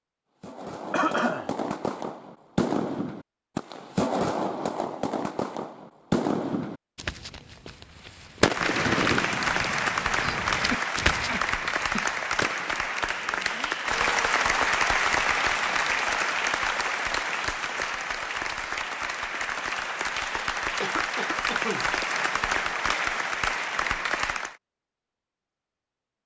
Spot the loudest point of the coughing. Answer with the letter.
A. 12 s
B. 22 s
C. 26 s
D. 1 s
D.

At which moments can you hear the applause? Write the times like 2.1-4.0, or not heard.
8.4-24.6.